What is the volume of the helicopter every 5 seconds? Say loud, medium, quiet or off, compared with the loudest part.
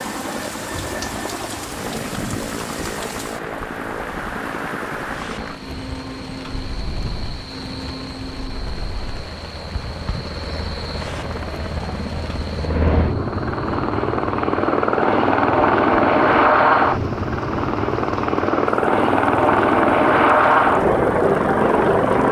quiet, quiet, medium, loud, loud.